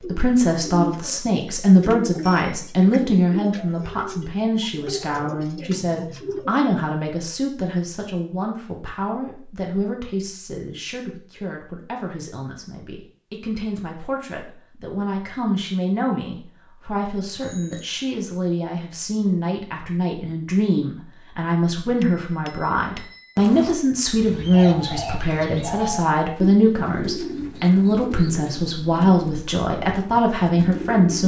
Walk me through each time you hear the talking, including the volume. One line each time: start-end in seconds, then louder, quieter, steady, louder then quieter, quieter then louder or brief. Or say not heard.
0.1-31.2 quieter then louder.